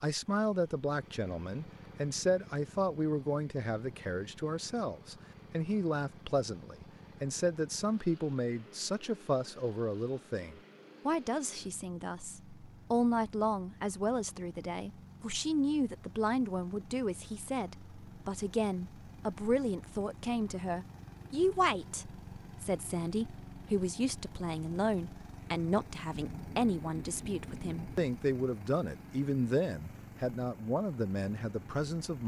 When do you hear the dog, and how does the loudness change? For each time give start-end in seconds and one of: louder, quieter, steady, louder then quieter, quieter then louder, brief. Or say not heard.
not heard.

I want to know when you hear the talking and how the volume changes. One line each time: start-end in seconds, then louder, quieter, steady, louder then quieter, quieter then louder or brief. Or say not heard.
0.0-32.2 steady.